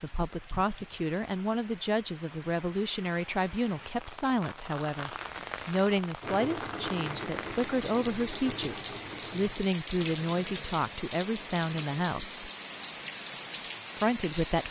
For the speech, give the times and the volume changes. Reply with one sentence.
The speech can be heard from 0.0 to 12.5 s, at a steady volume; and briefly from 13.9 to 14.6 s.